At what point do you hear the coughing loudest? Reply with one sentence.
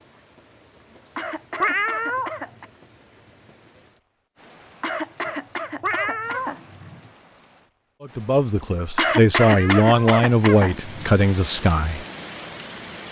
The loudest moment of the coughing is at 9 seconds.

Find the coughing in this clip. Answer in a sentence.
The coughing can be heard from 1.1 to 2.6 s, from 4.8 to 7.1 s and from 8.9 to 11.2 s.